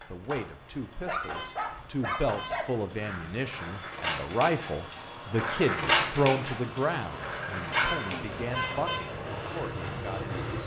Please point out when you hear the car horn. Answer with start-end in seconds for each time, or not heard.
1.2-2.6, 7.7-9.2.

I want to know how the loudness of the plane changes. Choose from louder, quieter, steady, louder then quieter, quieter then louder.
louder.